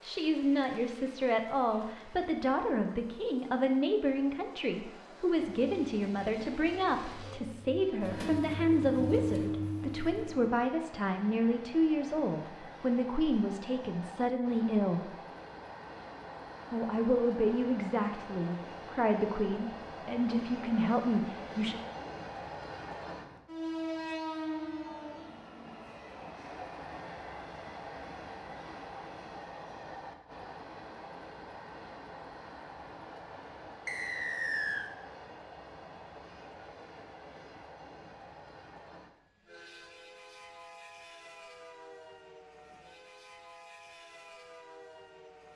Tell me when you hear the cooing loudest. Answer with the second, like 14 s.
9 s.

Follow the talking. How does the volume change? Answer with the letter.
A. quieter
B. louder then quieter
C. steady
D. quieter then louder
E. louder
C.